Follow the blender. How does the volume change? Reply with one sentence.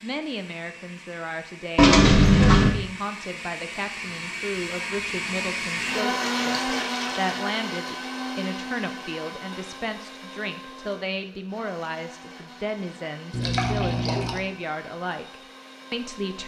The volume of the blender goes up, then down.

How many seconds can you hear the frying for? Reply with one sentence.
You can't hear the frying here.